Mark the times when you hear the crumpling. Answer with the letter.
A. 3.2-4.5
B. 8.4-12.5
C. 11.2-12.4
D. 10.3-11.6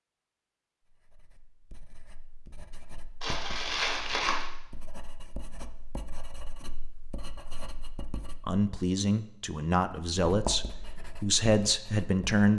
A.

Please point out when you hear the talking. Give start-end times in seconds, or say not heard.
8.4-12.5.